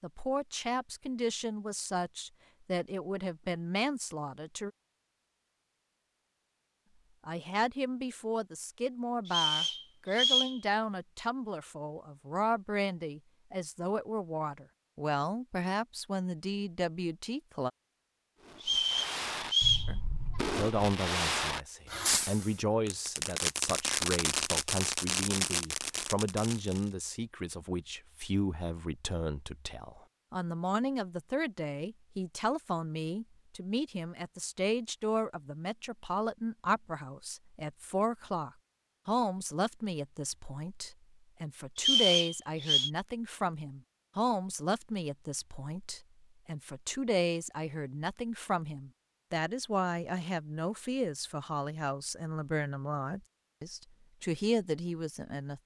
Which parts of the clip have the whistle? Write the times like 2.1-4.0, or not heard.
9.2-10.6, 18.6-19.9, 41.8-42.9.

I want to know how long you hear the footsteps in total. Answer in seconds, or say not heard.
not heard.